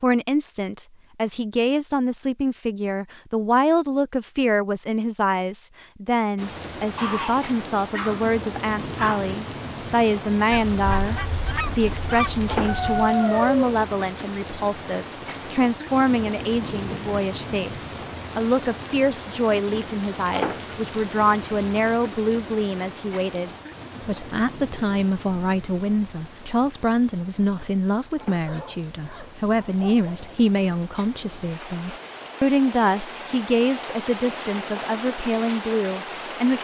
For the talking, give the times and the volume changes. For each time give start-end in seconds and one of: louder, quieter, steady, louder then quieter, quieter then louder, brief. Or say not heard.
0.0-36.5 steady.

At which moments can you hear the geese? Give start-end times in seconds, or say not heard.
10.5-13.1.